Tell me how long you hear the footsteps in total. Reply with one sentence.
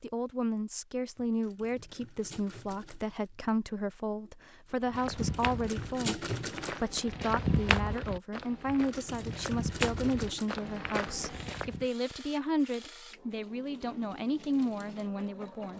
You can hear the footsteps for 7 seconds altogether.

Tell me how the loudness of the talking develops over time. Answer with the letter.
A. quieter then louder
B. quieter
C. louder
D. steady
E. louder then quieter
D.